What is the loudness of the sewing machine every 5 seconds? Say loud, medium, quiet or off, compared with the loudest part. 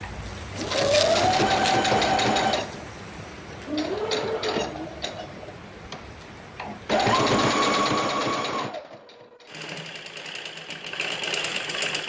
loud, loud, medium.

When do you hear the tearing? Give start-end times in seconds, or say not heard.
0.6-1.6.